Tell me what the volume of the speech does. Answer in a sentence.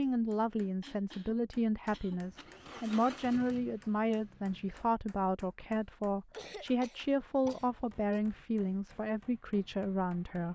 The loudness of the speech stays about the same.